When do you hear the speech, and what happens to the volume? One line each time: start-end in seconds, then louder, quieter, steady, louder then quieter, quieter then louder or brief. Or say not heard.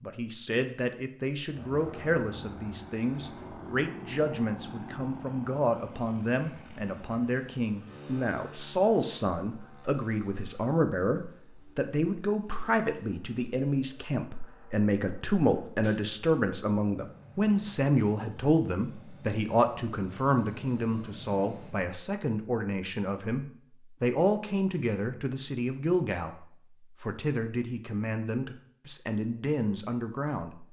0.0-30.6 steady.